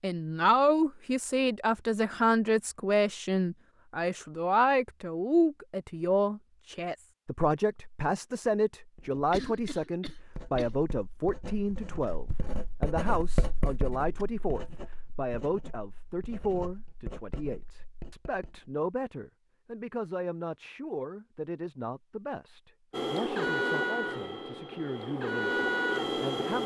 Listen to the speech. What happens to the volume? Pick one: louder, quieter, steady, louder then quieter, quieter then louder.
quieter.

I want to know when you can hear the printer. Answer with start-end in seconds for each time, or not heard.
22.9-26.6.